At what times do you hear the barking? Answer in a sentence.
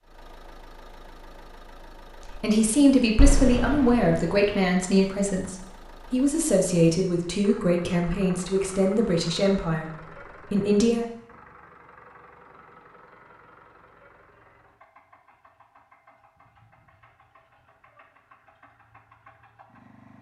The barking can't be heard in this clip.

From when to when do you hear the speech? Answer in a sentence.
The speech can be heard from 2.2 to 11.1 s.